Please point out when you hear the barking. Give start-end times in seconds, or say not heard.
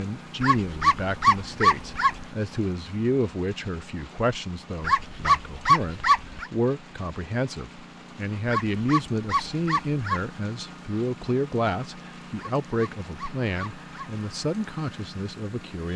0.4-2.2, 4.8-6.5, 8.4-10.3, 12.3-14.2.